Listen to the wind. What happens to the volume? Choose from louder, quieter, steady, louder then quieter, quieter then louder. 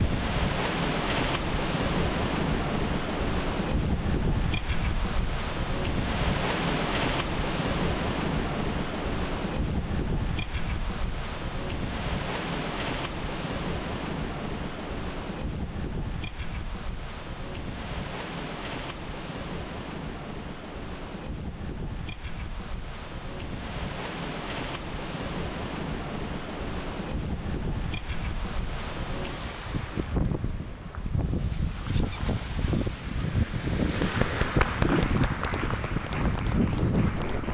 quieter then louder.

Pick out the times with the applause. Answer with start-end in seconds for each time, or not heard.
34.0-37.5.